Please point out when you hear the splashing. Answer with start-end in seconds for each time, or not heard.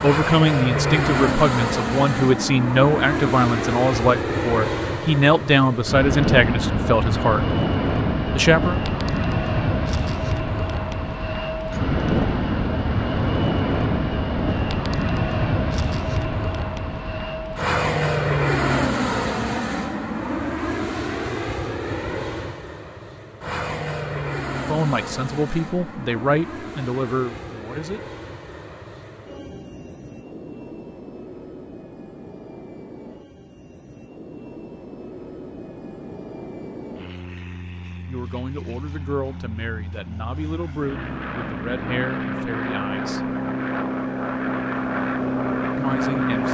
not heard.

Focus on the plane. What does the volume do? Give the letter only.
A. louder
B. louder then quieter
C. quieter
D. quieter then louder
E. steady
D.